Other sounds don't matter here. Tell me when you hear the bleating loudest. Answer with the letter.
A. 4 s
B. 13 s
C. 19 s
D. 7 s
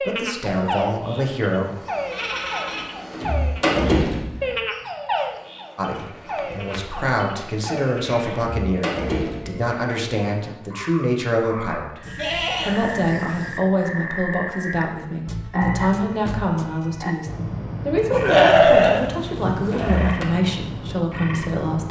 C.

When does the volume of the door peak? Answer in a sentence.
The volume of the door peaks at 4 seconds.